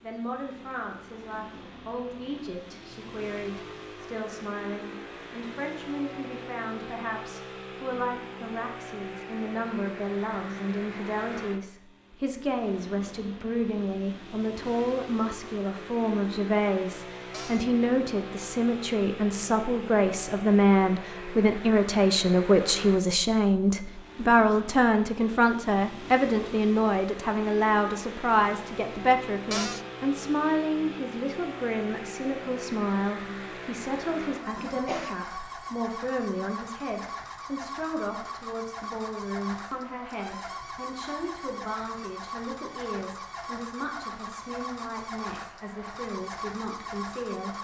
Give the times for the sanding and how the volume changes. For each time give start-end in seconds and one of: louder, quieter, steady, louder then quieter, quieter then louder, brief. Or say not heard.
not heard.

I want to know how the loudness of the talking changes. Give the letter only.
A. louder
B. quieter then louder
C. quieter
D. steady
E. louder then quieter
E.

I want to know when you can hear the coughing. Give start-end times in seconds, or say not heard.
34.4-35.1.